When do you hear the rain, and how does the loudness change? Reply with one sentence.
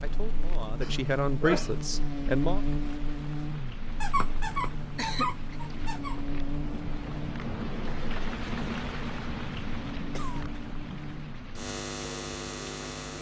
You can hear the rain from 0.0 to 13.1 s, getting louder then quieter.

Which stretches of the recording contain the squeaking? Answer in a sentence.
You can hear the squeaking from 4.0 to 6.3 s.